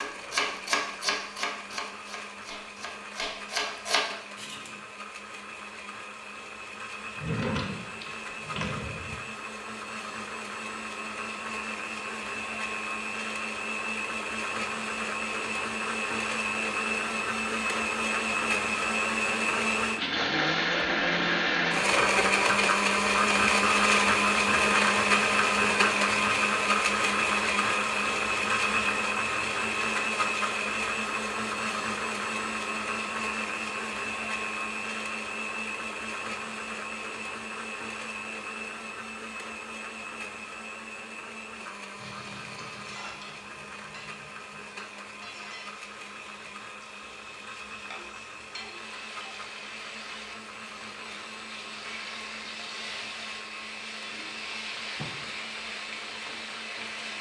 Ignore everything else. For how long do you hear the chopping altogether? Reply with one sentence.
You can hear the chopping for 5 seconds altogether.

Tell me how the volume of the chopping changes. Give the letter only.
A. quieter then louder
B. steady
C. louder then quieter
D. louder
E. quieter
A.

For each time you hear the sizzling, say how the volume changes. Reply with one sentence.
The sizzling can be heard from 42.0 to 57.1 s, getting louder.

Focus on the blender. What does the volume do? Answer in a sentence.
The volume of the blender goes up, then down.